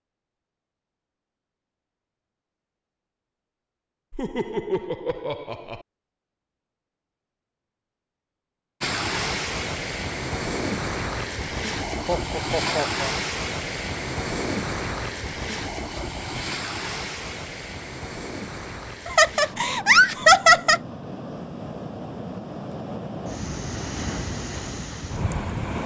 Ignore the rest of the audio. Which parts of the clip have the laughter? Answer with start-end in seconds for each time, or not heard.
4.1-5.8, 12.1-13.2, 19.1-20.8.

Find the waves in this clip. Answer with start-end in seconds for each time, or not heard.
8.8-25.8.